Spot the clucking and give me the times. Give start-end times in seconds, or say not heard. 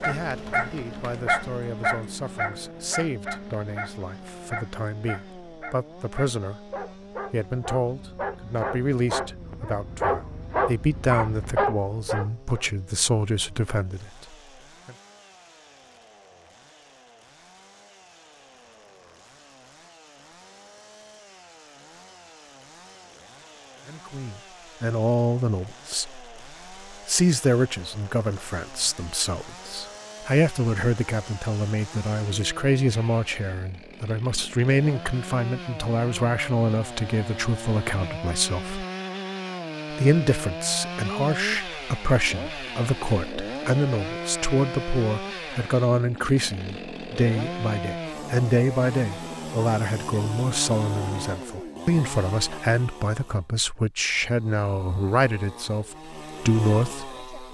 not heard.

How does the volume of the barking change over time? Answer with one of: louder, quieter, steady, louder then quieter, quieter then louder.
quieter then louder.